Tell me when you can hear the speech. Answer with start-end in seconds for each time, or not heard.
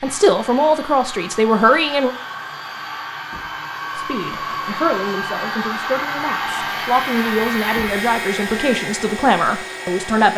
0.0-2.1, 4.0-10.3.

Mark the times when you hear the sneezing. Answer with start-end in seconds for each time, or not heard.
not heard.